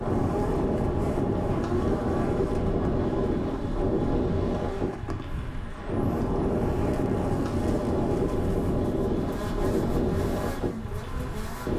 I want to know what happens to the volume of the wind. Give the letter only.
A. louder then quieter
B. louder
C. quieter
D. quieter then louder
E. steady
E.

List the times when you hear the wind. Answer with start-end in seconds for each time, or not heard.
0.0-11.7.